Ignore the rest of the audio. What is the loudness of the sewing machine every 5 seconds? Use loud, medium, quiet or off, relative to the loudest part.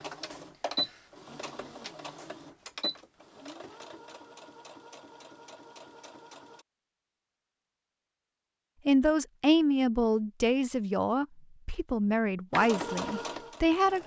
loud, quiet, loud.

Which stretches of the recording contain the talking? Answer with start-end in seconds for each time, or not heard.
8.8-14.0.